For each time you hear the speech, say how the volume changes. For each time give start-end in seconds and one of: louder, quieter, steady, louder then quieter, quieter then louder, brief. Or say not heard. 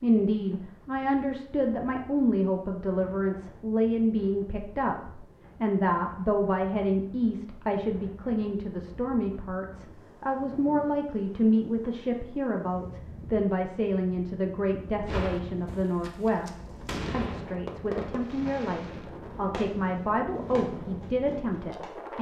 0.0-22.1 steady.